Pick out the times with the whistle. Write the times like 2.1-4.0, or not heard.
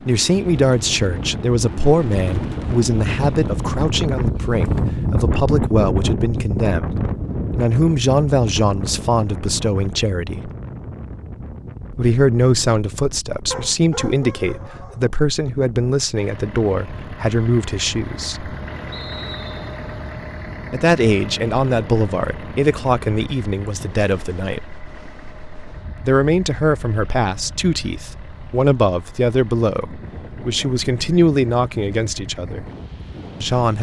18.9-19.8.